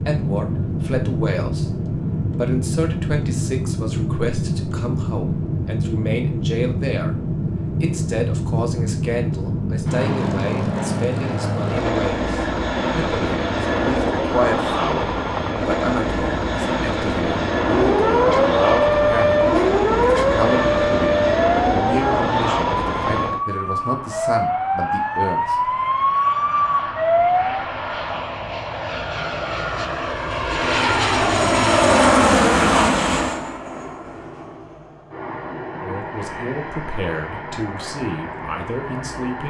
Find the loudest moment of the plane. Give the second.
32 s.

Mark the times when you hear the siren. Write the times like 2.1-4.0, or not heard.
17.6-27.5.